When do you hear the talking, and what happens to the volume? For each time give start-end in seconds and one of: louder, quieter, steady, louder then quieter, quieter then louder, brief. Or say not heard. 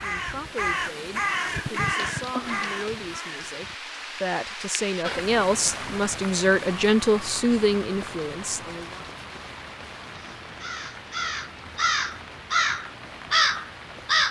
0.0-9.1 louder.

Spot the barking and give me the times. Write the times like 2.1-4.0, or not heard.
not heard.